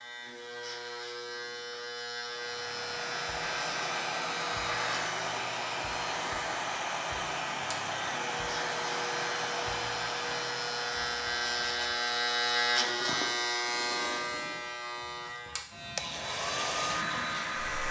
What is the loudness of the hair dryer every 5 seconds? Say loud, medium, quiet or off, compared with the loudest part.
loud, loud, medium, loud.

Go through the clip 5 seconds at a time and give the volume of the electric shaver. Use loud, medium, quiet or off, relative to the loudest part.
medium, medium, loud, medium.